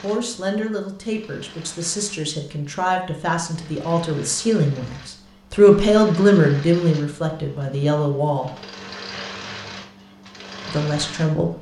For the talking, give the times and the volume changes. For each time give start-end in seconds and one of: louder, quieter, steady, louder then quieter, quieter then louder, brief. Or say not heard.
0.0-8.5 louder then quieter
10.7-11.5 brief.